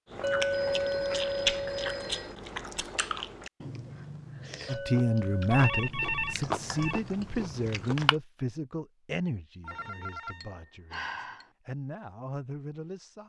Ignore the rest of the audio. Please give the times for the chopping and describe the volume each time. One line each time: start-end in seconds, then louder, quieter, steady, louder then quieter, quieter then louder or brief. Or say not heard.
not heard.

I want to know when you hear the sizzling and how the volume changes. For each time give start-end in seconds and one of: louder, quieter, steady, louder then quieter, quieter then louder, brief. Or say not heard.
not heard.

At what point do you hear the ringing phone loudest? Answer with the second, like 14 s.
6 s.